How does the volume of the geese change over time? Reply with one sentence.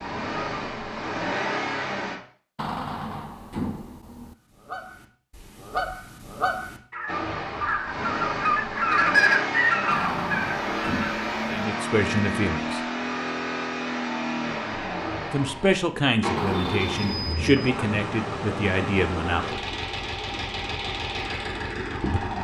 The loudness of the geese goes up.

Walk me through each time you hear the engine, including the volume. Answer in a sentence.
You can hear the engine briefly from 0.0 to 2.2 s; and from 7.0 to 22.3 s, at a steady volume.